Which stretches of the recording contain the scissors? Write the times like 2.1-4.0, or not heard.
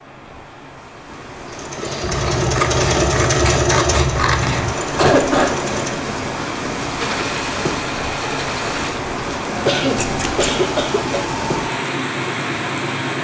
2.0-4.8, 9.9-10.5.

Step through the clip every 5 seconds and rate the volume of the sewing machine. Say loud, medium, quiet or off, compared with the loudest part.
loud, medium, medium.